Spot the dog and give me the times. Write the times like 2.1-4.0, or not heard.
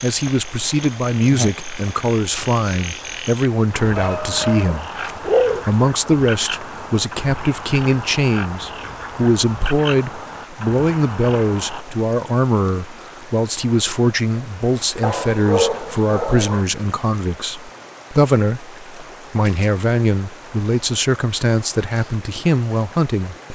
4.0-5.7, 15.0-16.6.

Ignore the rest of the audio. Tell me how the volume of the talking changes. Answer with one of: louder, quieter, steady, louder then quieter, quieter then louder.
steady.